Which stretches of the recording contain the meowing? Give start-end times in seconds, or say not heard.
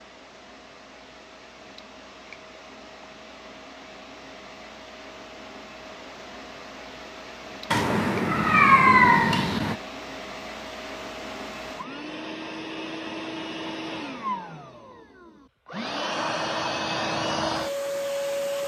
7.7-9.8.